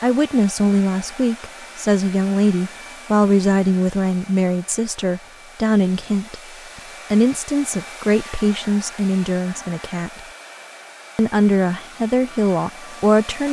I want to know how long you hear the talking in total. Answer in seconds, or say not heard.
12 s.